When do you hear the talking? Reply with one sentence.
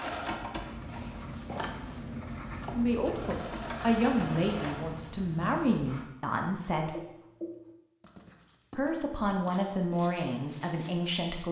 You can hear the talking from 2.8 to 7.0 s and from 8.8 to 11.4 s.